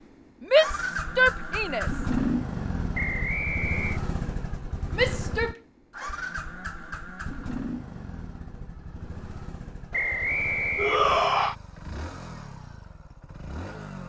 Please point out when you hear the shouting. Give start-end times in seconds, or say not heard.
0.4-1.9, 5.0-5.5, 10.8-11.6.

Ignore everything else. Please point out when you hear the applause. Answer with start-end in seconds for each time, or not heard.
not heard.